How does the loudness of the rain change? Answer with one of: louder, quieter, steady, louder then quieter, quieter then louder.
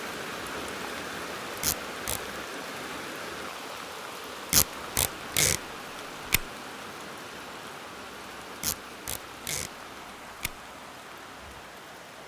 quieter.